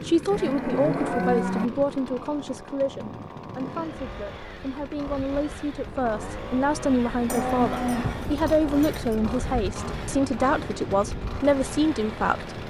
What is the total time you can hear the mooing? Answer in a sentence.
You can hear the mooing for 3 seconds altogether.